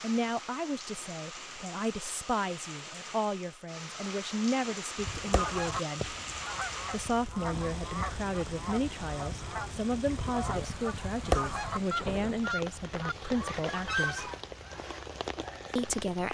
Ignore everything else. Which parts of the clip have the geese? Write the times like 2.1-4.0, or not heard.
5.0-14.7.